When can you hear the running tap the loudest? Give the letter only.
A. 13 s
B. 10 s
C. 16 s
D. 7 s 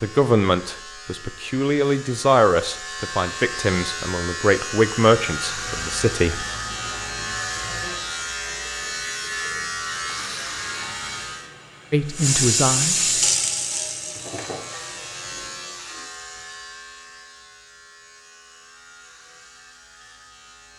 A.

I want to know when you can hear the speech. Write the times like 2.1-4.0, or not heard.
0.0-6.5, 11.9-13.1.